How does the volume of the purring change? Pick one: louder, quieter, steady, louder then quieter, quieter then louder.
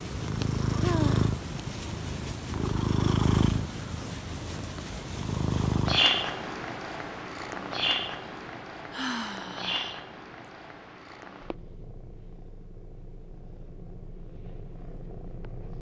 quieter.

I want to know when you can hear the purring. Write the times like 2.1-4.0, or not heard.
0.0-15.7.